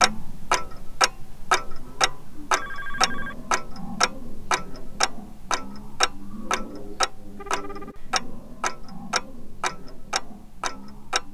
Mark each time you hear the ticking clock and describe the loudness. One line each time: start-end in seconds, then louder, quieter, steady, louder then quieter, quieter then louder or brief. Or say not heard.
0.0-11.2 quieter.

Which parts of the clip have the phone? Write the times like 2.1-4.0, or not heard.
2.5-3.4, 7.3-8.0.